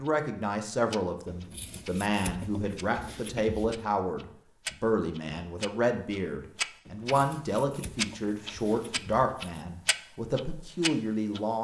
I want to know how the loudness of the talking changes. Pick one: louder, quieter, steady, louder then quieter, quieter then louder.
steady.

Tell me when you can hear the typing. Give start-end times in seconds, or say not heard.
not heard.